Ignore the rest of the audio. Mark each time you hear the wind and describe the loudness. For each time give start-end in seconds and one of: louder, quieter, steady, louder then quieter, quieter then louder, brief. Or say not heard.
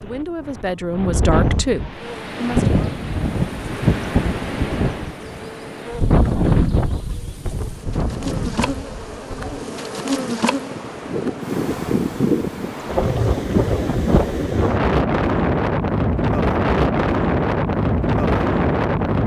0.0-19.2 quieter then louder.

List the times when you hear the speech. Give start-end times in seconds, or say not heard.
0.0-2.8.